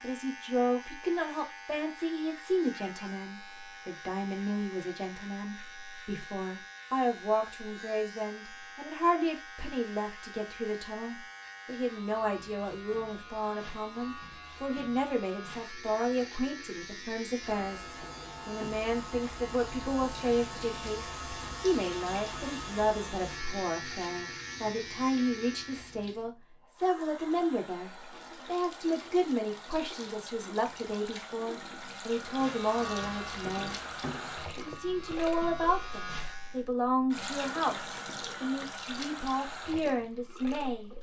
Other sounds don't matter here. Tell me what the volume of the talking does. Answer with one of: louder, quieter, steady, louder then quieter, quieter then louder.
steady.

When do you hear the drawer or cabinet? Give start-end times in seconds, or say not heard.
18.0-18.9, 33.5-35.0.